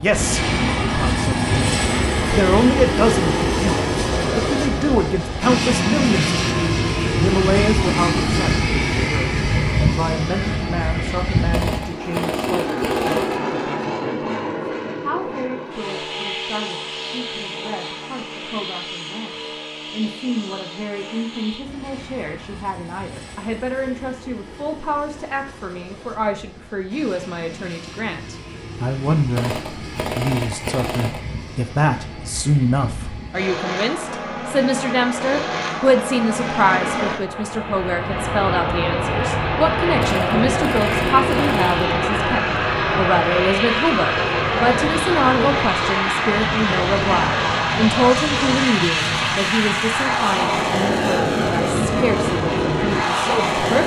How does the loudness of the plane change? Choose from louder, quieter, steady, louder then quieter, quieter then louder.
quieter then louder.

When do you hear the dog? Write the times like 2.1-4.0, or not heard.
not heard.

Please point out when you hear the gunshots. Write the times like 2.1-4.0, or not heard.
11.5-13.4, 29.4-31.2, 40.0-41.9.